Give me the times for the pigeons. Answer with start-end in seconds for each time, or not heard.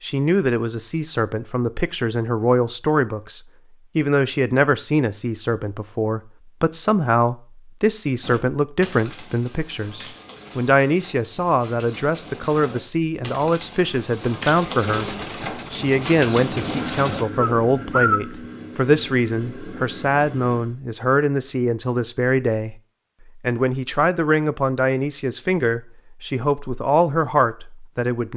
8.2-18.2.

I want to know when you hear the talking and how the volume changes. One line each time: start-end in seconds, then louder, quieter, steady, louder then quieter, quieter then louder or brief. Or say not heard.
0.0-22.8 steady
23.4-28.3 steady.